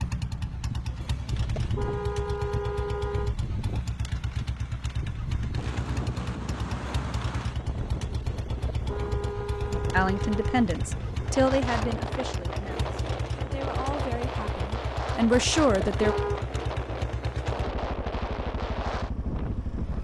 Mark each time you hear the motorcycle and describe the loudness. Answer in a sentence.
The motorcycle can be heard from 0.0 to 19.9 s, at a steady volume.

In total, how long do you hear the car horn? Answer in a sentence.
You can hear the car horn for 4 seconds altogether.